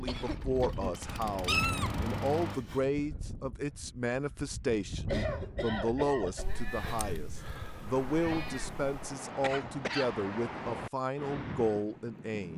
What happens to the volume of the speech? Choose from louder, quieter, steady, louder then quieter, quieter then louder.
steady.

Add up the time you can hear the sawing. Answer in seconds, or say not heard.
not heard.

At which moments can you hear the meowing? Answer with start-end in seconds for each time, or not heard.
1.4-2.9, 6.3-9.1.